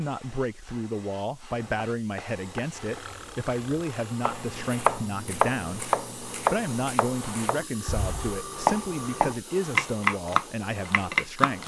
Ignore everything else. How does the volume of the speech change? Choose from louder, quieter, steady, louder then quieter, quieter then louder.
steady.